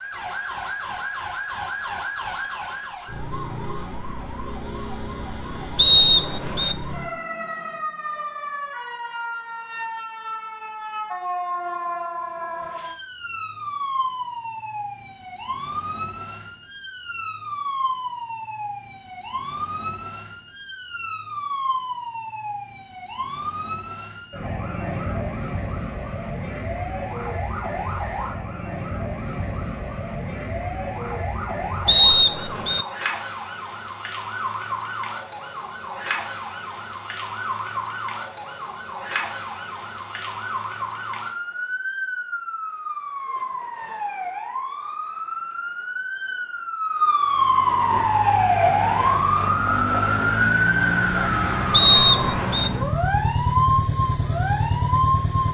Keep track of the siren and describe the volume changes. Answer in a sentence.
The volume of the siren goes up.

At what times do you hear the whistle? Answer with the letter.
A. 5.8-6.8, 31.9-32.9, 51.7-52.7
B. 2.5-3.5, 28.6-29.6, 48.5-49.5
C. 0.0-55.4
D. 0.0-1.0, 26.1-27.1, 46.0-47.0
A.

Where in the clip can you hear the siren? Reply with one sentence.
You can hear the siren from 0.0 to 55.4 s.